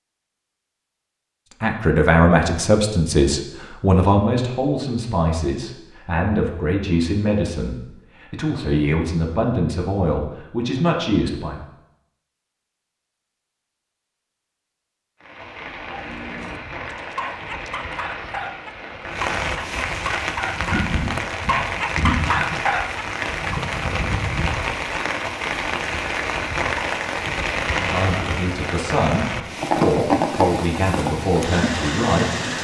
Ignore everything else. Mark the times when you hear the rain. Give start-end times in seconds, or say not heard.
15.2-32.5.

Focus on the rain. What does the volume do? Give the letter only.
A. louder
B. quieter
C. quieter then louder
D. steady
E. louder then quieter
A.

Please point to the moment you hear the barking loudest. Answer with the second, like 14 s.
22 s.